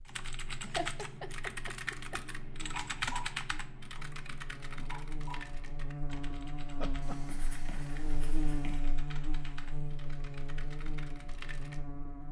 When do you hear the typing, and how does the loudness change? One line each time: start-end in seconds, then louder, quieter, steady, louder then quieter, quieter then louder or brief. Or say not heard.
0.1-11.8 quieter.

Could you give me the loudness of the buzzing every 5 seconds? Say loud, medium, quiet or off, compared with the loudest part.
medium, loud, loud.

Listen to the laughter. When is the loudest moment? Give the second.
1 s.